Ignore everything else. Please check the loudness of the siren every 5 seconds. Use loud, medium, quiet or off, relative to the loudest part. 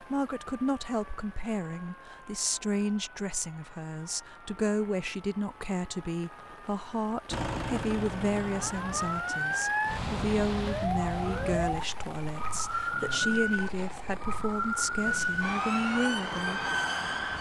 quiet, medium, loud, loud.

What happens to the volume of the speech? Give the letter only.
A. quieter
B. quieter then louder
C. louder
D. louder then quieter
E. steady
E.